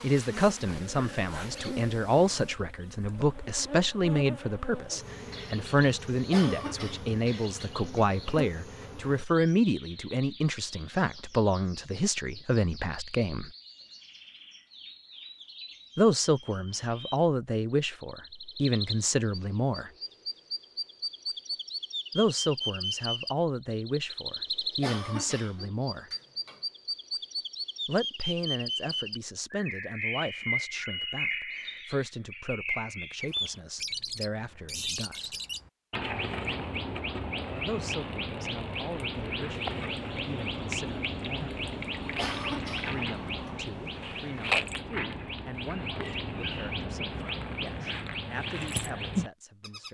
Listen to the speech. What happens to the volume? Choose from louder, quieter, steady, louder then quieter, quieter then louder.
quieter.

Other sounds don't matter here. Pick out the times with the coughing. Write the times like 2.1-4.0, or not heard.
6.3-8.1, 24.8-26.6, 42.1-43.5.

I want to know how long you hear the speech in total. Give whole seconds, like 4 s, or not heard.
40 s.